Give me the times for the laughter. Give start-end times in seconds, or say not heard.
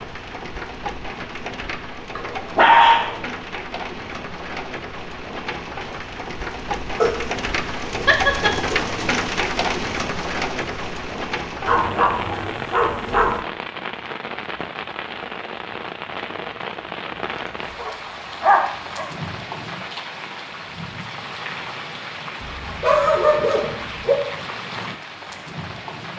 8.1-8.6.